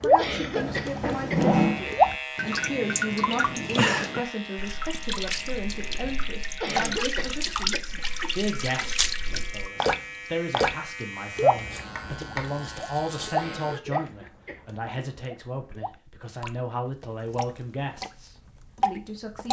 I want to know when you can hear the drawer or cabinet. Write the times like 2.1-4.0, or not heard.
0.6-1.8, 11.9-12.4.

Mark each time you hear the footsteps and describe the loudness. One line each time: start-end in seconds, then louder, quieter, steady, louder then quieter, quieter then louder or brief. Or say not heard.
not heard.